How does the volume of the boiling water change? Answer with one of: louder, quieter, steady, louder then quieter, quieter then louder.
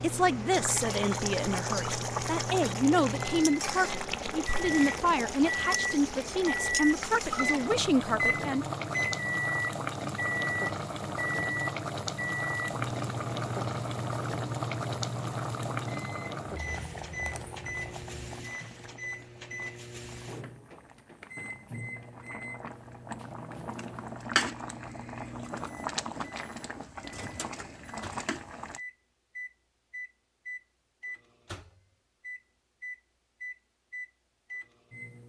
quieter then louder.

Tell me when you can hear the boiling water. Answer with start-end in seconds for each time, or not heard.
0.0-28.8.